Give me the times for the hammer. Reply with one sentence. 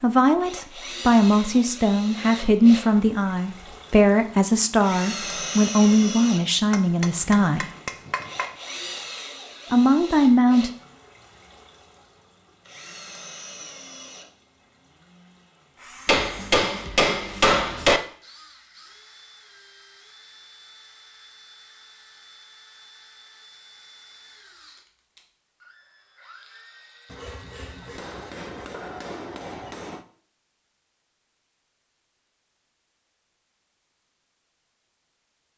You can hear the hammer from 6.7 to 8.6 s, from 16.1 to 18.0 s and from 27.1 to 30.1 s.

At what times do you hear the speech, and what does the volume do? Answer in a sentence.
You can hear the speech from 0.0 to 7.7 s, at a steady volume; and briefly from 9.7 to 10.7 s.